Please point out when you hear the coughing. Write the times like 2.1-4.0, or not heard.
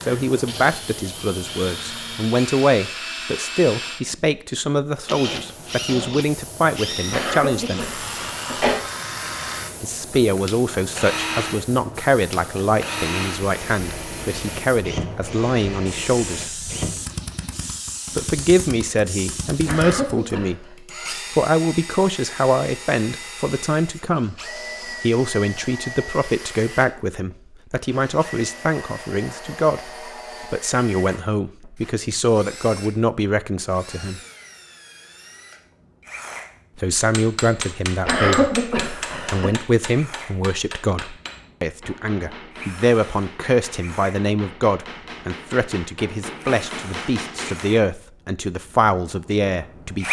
7.1-8.8, 19.6-20.7, 38.0-39.5.